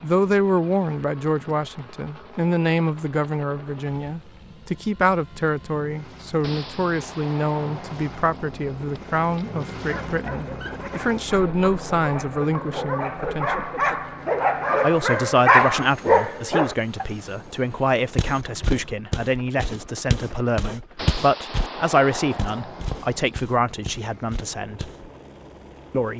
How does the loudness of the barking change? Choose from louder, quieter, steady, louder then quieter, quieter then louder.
louder.